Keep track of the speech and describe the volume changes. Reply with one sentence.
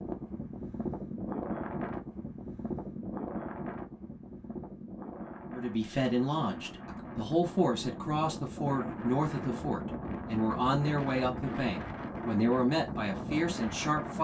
The loudness of the speech stays about the same.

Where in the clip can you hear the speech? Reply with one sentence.
You can hear the speech from 5.5 to 14.1 s.